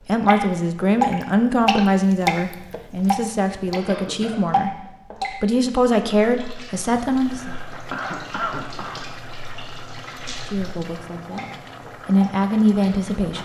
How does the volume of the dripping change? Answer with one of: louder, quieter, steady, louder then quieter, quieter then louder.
quieter then louder.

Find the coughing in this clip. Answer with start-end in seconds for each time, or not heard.
3.9-4.5, 7.3-9.1.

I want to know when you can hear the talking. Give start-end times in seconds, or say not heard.
0.1-4.7, 5.3-7.5, 10.2-13.3.